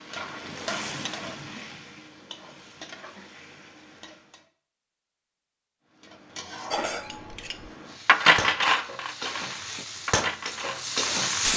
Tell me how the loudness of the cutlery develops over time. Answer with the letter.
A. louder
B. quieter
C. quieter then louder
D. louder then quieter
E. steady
D.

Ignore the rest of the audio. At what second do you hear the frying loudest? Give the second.
11 s.